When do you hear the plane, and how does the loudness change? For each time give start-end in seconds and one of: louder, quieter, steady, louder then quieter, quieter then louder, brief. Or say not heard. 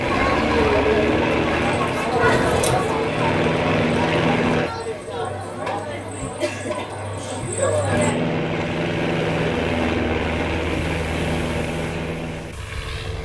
0.0-4.7 quieter then louder
7.8-13.2 quieter.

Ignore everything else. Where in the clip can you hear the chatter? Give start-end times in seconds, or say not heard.
0.0-8.2.